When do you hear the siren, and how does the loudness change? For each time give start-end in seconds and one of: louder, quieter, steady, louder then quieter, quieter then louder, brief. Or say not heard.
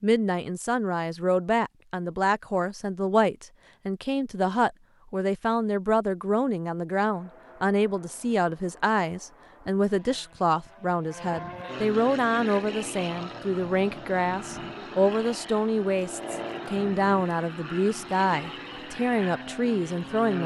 not heard.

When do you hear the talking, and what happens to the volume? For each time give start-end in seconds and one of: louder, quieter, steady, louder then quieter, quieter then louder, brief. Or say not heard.
0.0-20.4 steady.